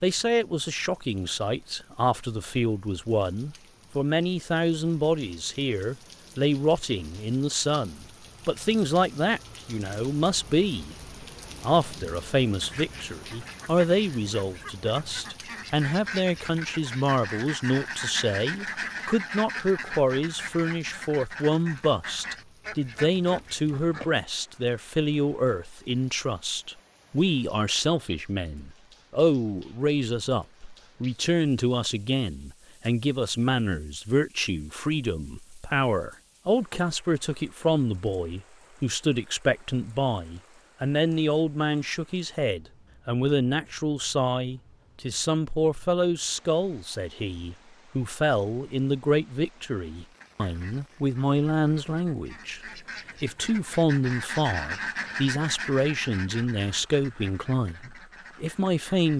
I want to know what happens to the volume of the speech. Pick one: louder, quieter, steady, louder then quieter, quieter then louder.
steady.